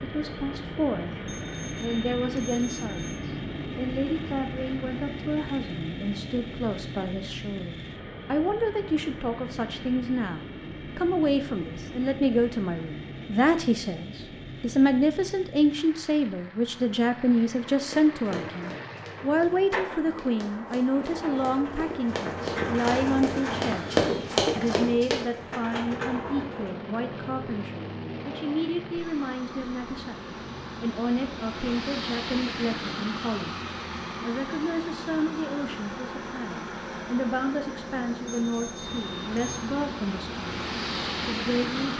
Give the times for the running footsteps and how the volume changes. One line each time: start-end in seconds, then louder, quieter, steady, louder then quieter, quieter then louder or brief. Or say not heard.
17.7-25.2 louder.